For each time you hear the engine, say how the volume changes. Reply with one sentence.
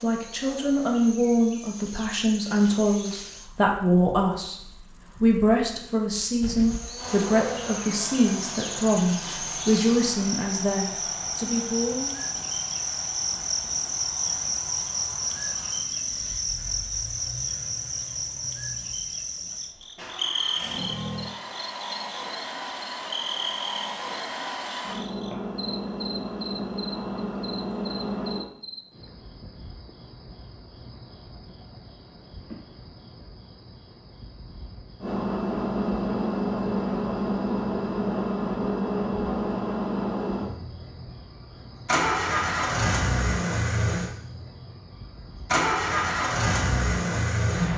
The engine can be heard from 7.0 to 28.4 s, getting quieter then louder; and from 35.0 to 47.7 s, at a steady volume.